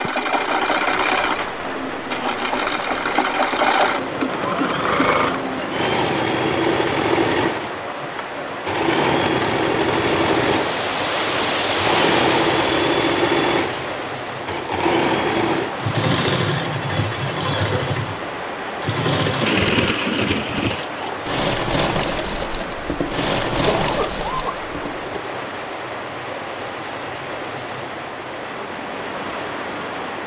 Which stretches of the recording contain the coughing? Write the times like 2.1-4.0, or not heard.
23.6-24.6.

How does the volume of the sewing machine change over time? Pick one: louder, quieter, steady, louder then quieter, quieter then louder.
steady.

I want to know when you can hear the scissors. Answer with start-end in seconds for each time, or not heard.
not heard.